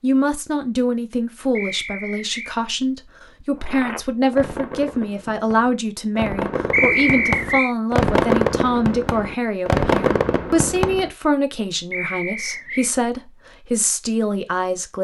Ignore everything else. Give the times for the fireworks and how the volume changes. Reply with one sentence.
You can hear the fireworks from 3.6 to 11.1 s, getting louder.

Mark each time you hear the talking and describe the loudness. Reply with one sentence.
The talking can be heard from 0.0 to 15.0 s, at a steady volume.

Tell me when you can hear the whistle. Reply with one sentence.
You can hear the whistle from 1.6 to 2.5 s, from 6.7 to 7.8 s and from 11.9 to 12.9 s.